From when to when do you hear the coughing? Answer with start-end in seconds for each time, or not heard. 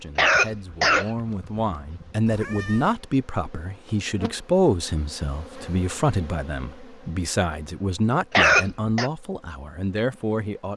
0.1-2.1, 8.3-9.1.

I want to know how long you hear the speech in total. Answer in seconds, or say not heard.
11 s.